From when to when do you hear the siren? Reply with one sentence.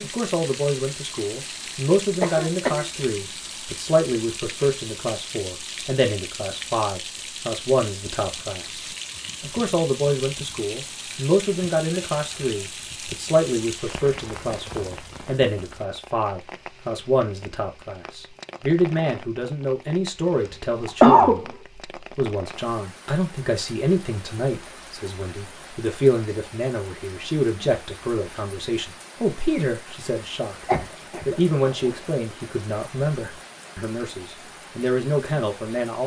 The siren can't be heard in this clip.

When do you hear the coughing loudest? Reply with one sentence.
The loudest moment of the coughing is at 21 seconds.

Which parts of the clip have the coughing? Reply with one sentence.
You can hear the coughing from 2.2 to 2.9 s, from 20.4 to 21.4 s and from 30.6 to 32.0 s.